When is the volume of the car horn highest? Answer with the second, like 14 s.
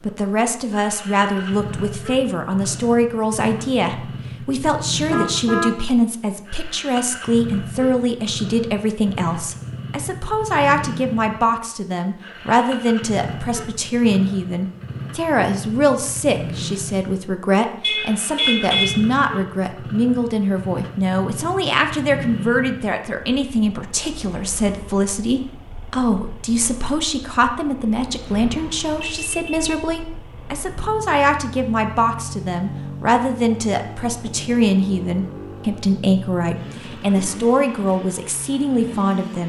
19 s.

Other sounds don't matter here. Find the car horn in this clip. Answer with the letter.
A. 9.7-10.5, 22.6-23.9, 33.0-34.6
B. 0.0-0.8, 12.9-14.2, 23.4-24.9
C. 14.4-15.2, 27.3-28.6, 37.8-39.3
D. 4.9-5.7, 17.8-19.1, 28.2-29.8
D.